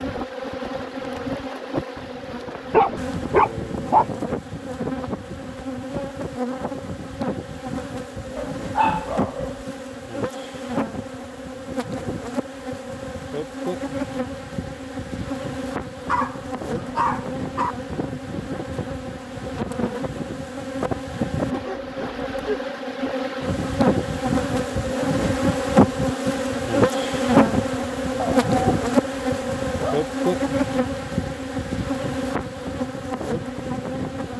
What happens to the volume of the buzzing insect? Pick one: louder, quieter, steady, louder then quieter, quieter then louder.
louder.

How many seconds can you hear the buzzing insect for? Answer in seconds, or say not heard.
34 s.